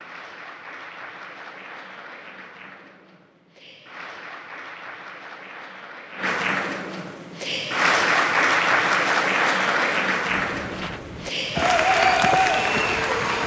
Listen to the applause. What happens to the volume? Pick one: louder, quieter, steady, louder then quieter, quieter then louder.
louder.